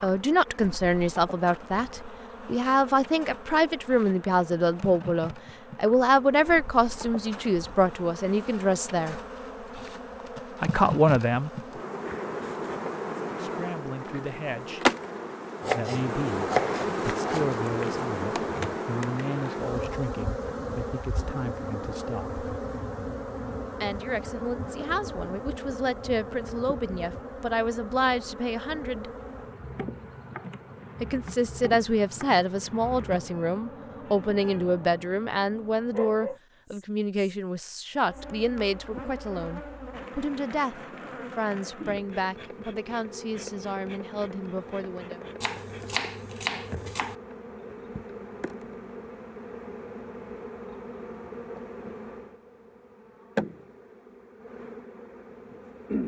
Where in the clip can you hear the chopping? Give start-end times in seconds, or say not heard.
15.6-17.5, 45.4-47.1.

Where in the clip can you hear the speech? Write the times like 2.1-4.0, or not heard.
0.0-9.2, 10.6-11.5, 13.3-14.8, 15.8-22.4, 23.8-29.1, 31.0-45.2.